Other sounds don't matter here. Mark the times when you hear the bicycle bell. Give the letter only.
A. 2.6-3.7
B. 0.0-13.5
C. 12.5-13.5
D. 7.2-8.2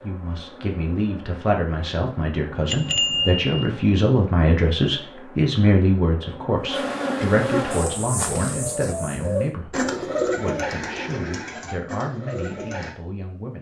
A.